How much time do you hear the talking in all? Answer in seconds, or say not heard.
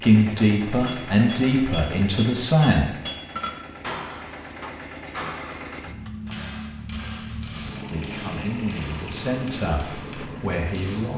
6 s.